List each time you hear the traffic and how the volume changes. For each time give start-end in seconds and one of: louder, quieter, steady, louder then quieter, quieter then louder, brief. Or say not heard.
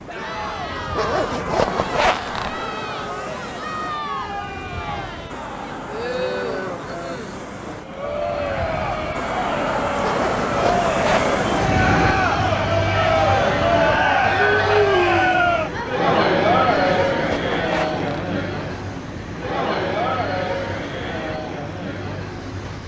0.0-22.8 louder then quieter.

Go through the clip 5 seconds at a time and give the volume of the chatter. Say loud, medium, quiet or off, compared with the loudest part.
medium, medium, loud, loud, medium.